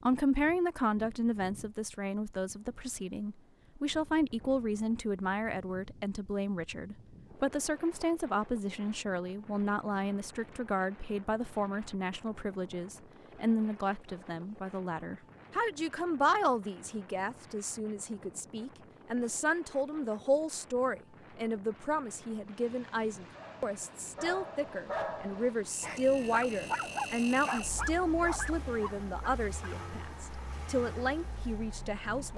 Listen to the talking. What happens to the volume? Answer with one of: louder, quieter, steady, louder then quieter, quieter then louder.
steady.